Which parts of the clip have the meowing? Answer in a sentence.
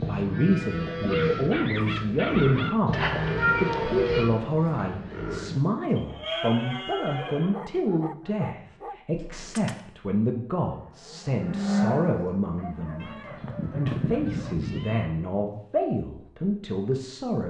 The meowing can be heard from 2.9 to 4.2 s, from 9.1 to 9.8 s and from 13.0 to 15.1 s.